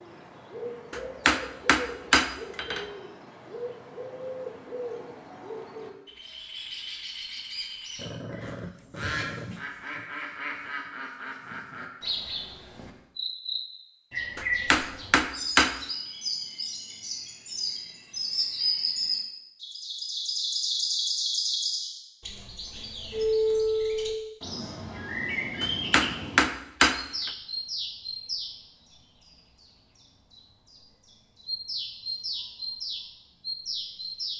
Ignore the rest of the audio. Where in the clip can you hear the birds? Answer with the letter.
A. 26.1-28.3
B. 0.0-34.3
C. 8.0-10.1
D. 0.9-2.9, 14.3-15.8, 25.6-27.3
B.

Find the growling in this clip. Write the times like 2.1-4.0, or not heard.
8.0-10.1.